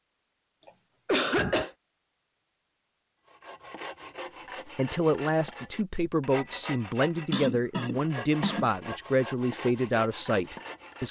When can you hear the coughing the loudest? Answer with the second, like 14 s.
1 s.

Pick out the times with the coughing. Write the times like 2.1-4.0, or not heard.
0.6-1.7, 7.3-8.7.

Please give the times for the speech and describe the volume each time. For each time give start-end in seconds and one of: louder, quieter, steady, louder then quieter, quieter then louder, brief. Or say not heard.
4.7-11.0 steady.